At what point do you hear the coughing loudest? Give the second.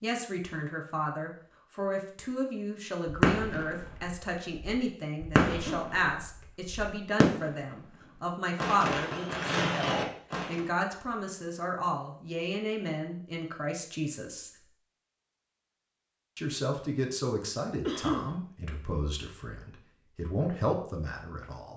18 s.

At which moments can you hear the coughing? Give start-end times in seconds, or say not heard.
5.5-6.0, 17.9-18.4.